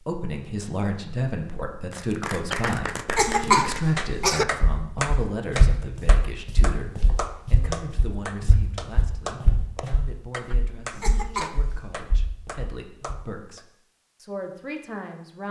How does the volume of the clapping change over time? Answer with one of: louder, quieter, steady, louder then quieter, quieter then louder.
quieter.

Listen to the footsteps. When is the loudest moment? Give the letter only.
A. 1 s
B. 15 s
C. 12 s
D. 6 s
D.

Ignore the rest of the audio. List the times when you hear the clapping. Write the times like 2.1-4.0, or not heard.
1.9-13.7.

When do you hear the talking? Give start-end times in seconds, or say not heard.
0.0-15.4.